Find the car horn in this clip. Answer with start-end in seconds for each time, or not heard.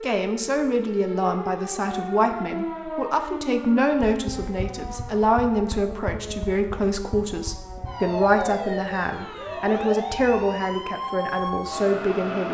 not heard.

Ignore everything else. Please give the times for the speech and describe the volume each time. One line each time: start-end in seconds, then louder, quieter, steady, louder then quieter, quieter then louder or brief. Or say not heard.
0.0-12.4 steady.